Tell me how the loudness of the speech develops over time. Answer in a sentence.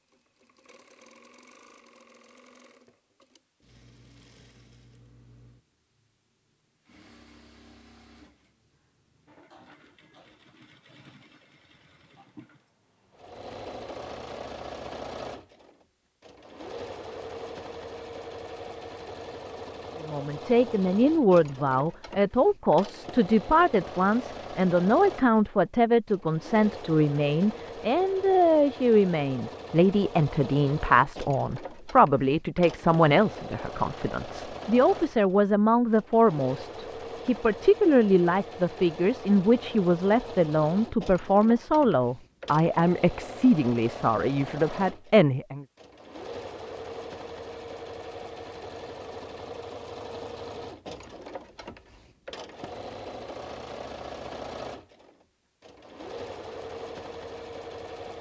The volume of the speech stays about the same.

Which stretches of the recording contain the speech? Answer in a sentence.
You can hear the speech from 19.9 to 45.6 s.